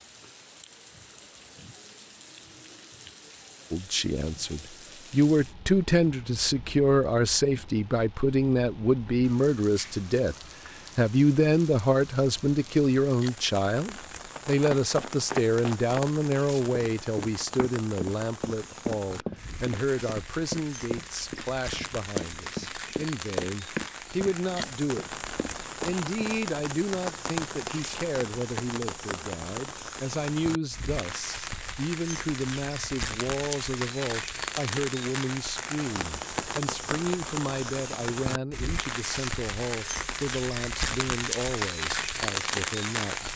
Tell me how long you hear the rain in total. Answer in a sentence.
You can hear the rain for 43 seconds altogether.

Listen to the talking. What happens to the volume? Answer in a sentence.
The volume of the talking goes down.